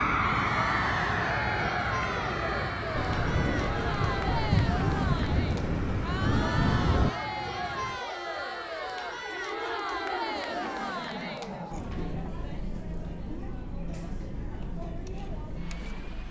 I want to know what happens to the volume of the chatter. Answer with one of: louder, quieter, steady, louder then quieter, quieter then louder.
quieter.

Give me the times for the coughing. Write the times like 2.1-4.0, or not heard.
not heard.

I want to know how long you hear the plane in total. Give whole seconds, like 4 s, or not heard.
16 s.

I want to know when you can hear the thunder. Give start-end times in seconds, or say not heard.
3.0-7.1.